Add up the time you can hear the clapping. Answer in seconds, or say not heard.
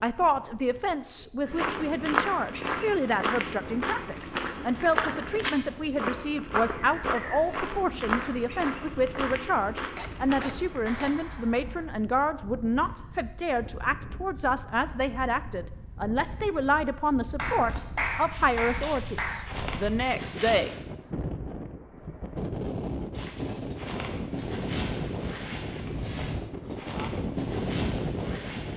3 s.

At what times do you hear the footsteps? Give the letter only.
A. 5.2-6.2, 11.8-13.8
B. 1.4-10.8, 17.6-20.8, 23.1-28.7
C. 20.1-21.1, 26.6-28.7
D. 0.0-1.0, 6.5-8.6
B.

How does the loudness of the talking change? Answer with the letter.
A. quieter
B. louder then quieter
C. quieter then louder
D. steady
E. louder
D.